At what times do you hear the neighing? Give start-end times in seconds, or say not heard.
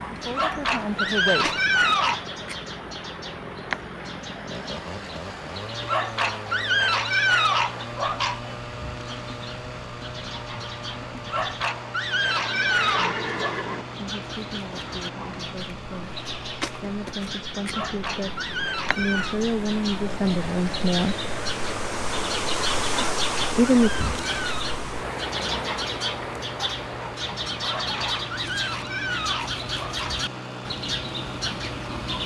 12.4-13.8.